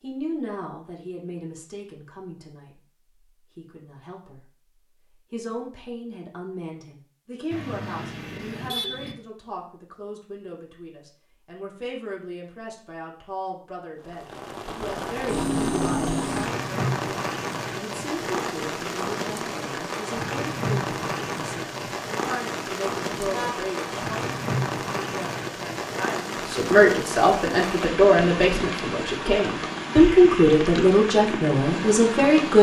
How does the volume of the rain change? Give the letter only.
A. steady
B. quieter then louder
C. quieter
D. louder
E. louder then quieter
A.